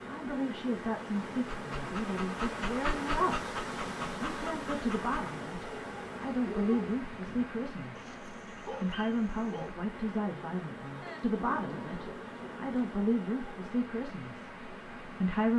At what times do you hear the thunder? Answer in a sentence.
The thunder can be heard from 11.0 to 12.9 s.